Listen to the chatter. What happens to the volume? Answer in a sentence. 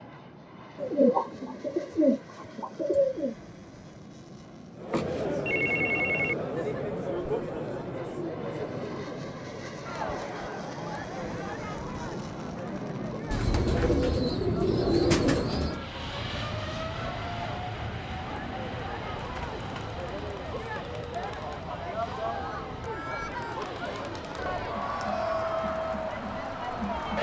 The volume of the chatter goes down, then up.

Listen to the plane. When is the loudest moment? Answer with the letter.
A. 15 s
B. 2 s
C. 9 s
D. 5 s
A.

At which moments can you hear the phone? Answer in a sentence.
The phone can be heard from 4.9 to 6.3 s.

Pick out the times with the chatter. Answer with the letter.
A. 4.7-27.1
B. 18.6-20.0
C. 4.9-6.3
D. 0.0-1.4
A.